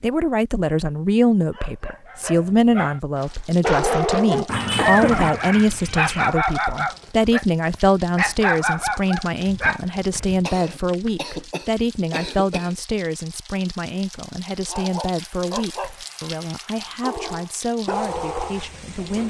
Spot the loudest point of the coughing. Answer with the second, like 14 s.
5 s.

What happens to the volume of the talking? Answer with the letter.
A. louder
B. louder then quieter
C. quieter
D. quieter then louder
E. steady
C.